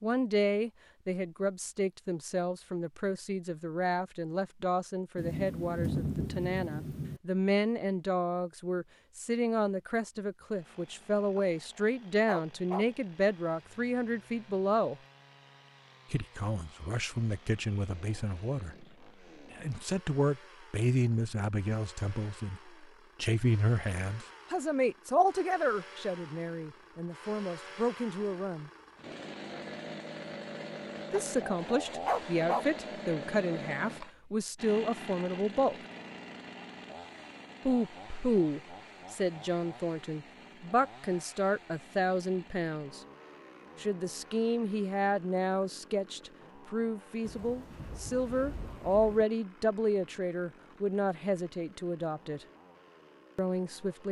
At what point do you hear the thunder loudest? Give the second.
6 s.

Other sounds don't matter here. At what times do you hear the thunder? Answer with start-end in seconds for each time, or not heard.
5.2-7.2, 47.2-49.2.